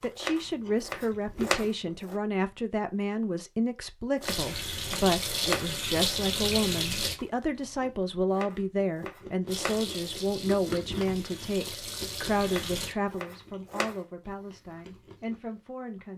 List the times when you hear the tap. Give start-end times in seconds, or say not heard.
4.2-7.2, 9.4-12.9.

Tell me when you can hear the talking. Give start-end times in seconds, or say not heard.
0.0-16.1.